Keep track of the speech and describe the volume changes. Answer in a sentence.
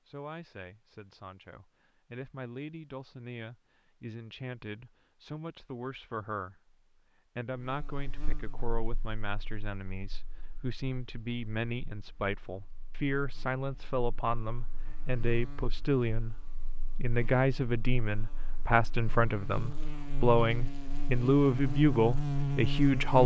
The volume of the speech goes up.